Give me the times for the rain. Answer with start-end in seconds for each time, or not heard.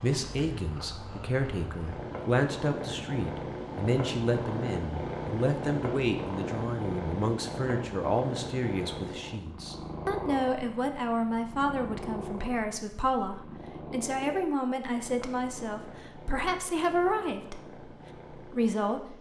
not heard.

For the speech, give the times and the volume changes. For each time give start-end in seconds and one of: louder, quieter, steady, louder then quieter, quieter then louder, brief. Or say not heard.
0.0-19.1 steady.